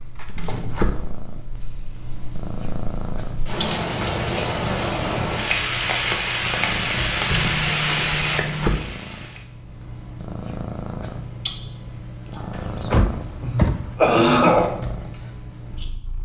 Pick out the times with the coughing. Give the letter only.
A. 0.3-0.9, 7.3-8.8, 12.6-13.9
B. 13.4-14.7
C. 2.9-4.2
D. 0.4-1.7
B.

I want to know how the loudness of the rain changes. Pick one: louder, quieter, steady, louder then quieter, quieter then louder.
louder.